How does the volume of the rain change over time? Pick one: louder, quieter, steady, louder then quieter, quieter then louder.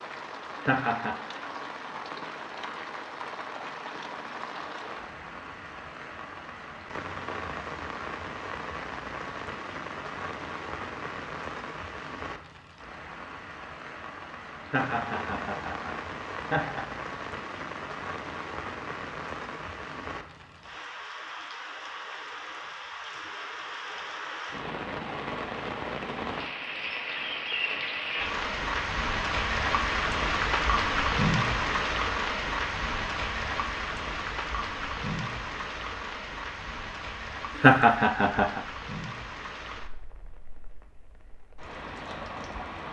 louder then quieter.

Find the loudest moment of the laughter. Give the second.
38 s.